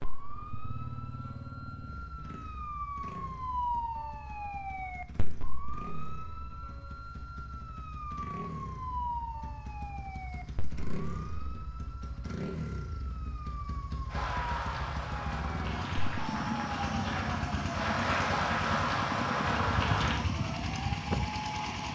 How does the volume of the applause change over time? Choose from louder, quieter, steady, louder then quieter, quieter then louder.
louder.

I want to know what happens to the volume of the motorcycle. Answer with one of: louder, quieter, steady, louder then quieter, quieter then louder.
louder.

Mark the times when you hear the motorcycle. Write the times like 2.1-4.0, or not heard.
0.0-21.8.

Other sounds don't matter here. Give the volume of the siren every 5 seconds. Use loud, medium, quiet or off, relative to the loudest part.
loud, medium, quiet, loud, loud.